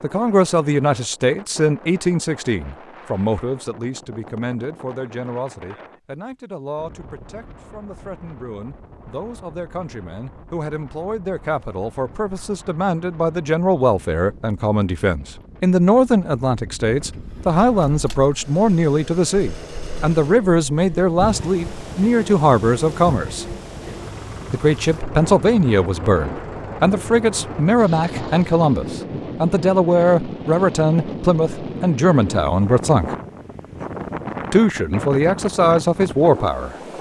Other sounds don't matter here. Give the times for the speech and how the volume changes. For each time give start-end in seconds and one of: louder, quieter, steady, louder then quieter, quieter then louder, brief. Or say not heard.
0.0-23.6 quieter then louder
24.5-33.1 steady
34.5-36.8 brief.